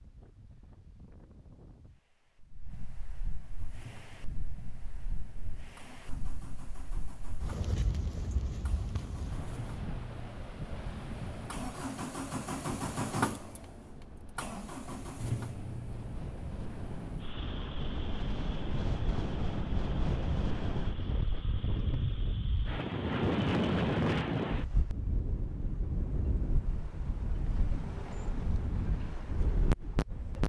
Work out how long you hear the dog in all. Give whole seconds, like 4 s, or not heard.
not heard.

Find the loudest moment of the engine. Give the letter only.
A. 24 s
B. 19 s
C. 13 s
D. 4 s
C.